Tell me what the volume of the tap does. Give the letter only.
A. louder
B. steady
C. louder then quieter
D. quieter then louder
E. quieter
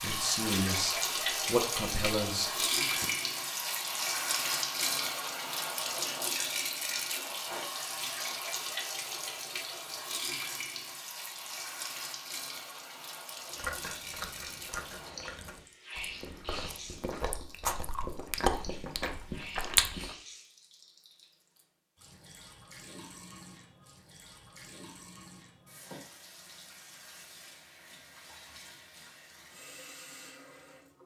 E.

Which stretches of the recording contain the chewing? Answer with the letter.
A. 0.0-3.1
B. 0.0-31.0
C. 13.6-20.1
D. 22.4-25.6
C.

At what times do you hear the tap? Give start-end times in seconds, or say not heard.
0.0-31.0.